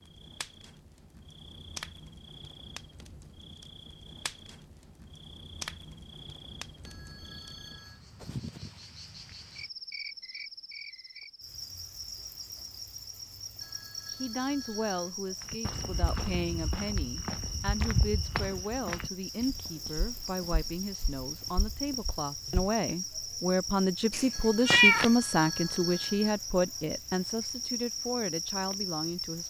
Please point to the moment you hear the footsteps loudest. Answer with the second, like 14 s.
18 s.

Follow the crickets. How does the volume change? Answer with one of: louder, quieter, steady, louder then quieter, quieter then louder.
louder.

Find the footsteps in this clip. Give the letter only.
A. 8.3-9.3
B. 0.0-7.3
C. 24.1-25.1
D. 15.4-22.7
D.